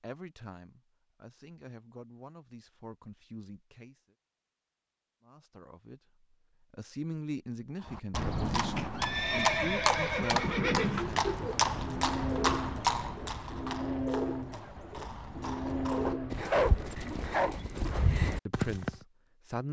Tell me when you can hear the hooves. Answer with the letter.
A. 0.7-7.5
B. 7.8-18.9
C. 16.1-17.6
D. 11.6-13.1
B.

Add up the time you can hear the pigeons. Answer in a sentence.
The pigeons can be heard for 7 seconds in total.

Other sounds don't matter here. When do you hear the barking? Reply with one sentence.
The barking can be heard from 16.1 to 17.6 s.